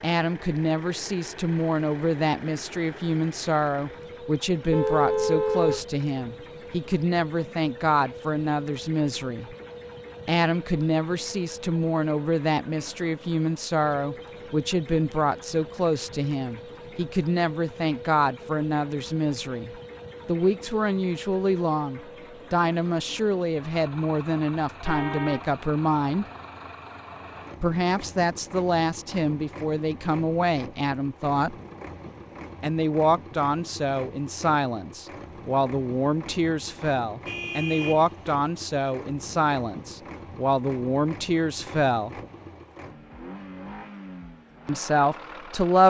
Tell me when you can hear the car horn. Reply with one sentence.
You can hear the car horn from 4.7 to 5.8 s, from 24.9 to 25.5 s and from 37.2 to 38.5 s.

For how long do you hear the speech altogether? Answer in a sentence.
You can hear the speech for 40 seconds altogether.